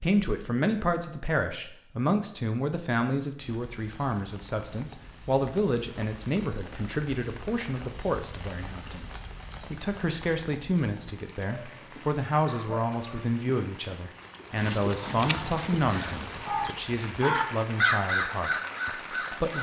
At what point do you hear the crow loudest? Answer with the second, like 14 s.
18 s.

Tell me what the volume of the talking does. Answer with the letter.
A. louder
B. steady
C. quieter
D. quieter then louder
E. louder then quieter
B.